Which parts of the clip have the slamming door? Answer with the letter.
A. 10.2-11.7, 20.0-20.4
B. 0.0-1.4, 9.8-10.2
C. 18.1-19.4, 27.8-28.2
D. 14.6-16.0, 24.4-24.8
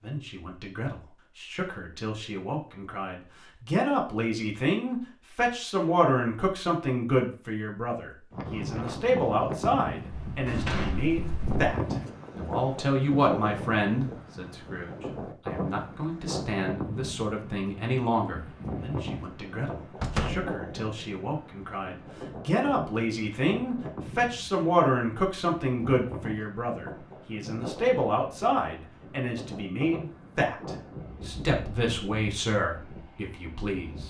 A.